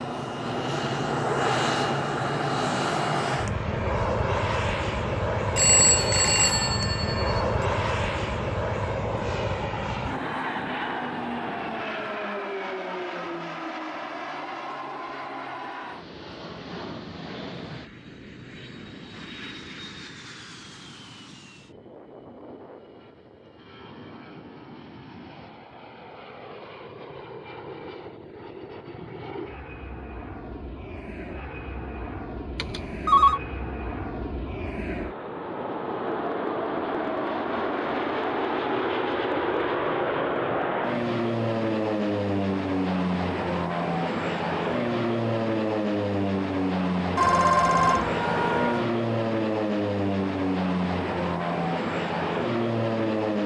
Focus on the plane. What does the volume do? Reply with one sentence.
The loudness of the plane goes down, then up.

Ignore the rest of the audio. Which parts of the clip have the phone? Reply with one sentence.
The phone can be heard from 5.5 to 7.4 s, from 32.5 to 33.4 s and from 47.1 to 48.9 s.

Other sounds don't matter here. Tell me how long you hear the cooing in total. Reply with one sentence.
The cooing can't be heard in this clip.